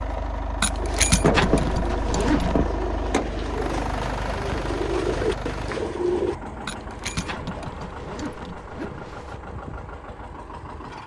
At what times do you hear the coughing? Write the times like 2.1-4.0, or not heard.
not heard.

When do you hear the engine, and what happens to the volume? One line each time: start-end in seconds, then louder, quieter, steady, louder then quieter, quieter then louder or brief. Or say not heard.
0.0-11.0 quieter.